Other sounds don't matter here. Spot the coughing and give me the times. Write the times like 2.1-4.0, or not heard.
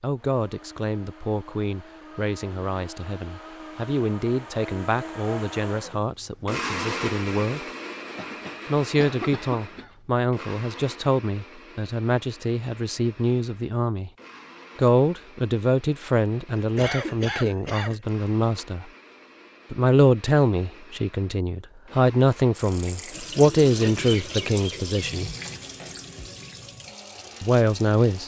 8.2-9.9, 16.6-18.0.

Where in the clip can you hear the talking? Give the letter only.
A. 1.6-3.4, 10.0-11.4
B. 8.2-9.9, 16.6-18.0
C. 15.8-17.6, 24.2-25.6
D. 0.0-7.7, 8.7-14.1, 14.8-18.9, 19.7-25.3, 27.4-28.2
D.